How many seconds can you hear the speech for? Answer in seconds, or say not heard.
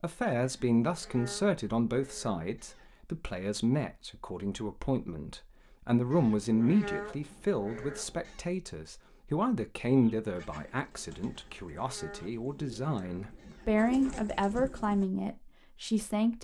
16 s.